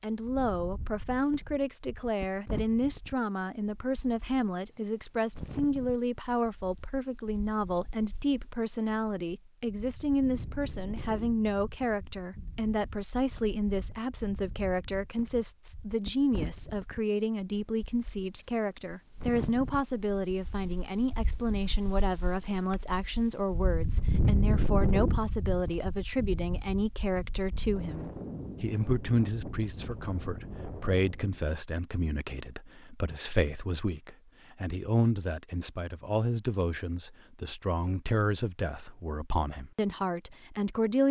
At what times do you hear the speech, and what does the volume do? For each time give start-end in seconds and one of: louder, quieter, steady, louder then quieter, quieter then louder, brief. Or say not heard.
0.0-41.0 steady.